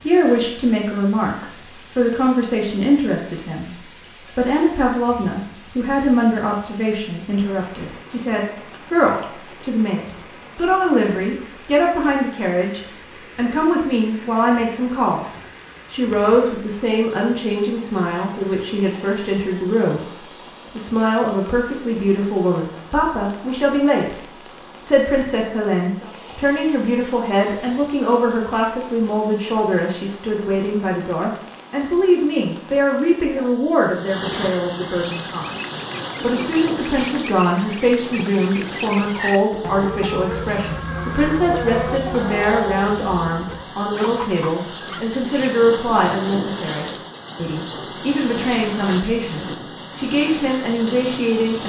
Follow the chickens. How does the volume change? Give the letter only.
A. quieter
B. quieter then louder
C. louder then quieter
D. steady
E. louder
C.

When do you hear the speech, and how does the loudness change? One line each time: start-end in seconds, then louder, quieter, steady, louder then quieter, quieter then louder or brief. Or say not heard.
0.0-20.1 steady
20.8-51.6 steady.